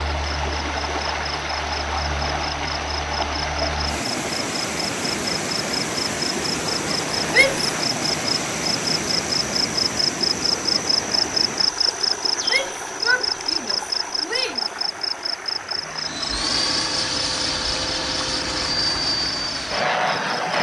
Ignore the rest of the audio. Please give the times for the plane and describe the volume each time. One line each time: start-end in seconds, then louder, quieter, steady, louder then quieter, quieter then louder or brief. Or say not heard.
15.9-20.5 steady.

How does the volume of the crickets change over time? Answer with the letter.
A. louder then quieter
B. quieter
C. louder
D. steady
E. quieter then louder
A.